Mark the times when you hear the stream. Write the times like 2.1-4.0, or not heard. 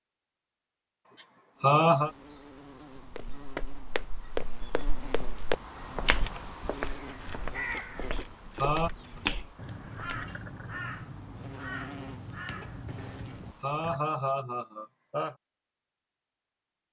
not heard.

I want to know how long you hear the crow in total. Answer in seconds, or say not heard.
7 s.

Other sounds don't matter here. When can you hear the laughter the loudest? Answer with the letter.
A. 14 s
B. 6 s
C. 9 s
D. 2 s
D.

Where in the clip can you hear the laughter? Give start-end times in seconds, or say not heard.
1.1-2.1, 8.0-8.9, 13.1-15.3.